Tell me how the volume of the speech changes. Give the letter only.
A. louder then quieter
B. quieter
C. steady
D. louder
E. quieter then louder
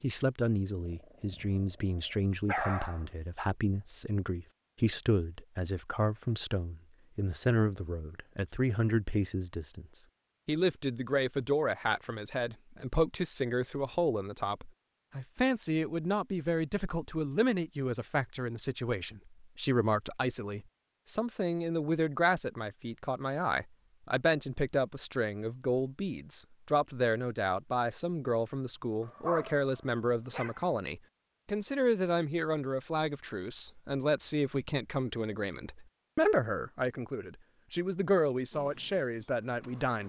C.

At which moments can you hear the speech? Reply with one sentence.
You can hear the speech from 0.0 to 40.0 s.